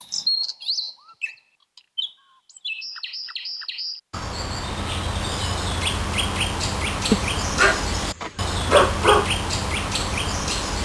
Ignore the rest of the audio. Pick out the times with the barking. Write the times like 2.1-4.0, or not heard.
7.1-9.2.